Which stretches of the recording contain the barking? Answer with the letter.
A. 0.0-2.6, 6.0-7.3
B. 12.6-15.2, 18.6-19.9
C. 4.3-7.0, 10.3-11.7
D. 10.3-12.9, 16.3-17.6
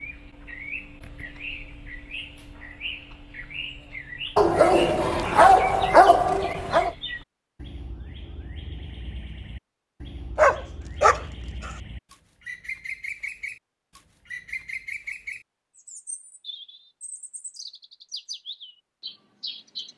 C.